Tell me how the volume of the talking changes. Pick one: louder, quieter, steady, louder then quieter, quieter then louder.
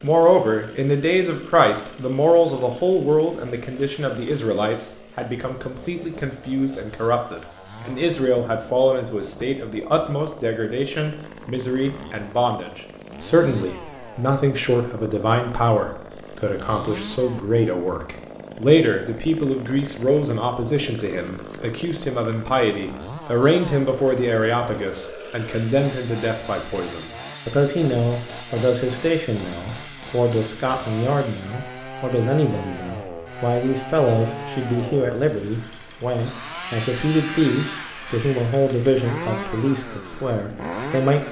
steady.